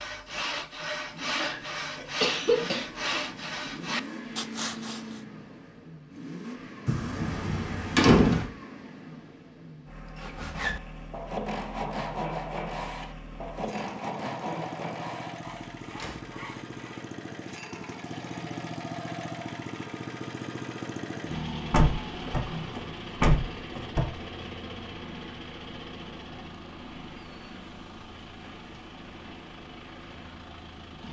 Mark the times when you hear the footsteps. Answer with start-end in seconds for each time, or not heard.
not heard.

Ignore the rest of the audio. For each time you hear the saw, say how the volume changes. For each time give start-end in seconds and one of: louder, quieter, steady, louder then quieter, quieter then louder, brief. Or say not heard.
0.0-5.2 steady
10.2-17.1 quieter.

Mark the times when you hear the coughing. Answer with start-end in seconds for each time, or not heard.
1.4-2.9.